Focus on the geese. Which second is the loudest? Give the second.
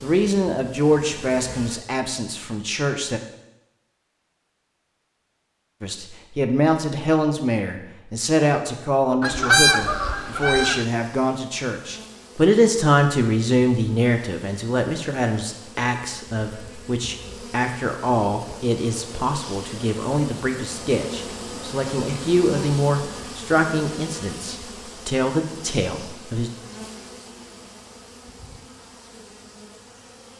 10 s.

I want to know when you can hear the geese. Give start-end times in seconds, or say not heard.
9.2-10.8.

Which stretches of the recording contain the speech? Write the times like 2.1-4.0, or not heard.
0.0-3.2, 5.8-26.5.